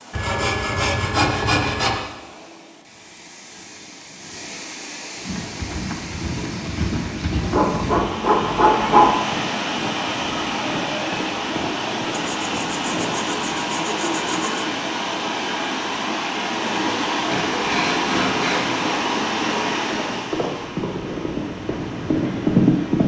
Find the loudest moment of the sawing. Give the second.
9 s.